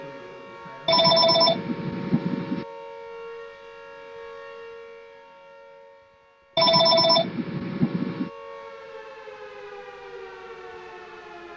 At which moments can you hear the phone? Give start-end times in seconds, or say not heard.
0.8-2.6, 6.5-8.3.